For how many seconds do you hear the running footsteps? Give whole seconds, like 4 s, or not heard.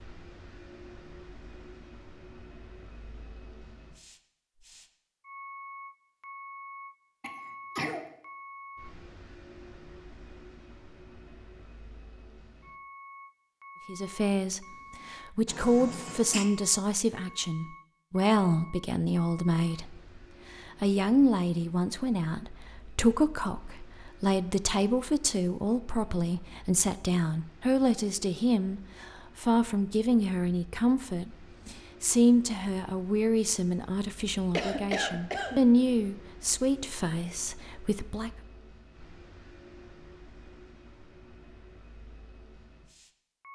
not heard.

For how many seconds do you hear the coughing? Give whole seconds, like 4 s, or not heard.
3 s.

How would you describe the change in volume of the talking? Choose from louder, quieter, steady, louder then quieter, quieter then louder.
steady.